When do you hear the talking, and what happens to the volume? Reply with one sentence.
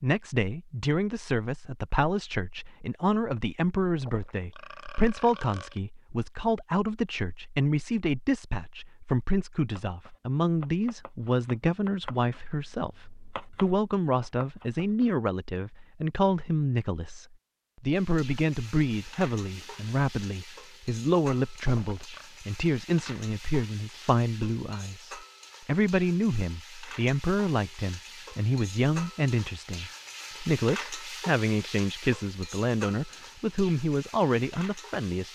The talking can be heard from 0.0 to 35.3 s, at a steady volume.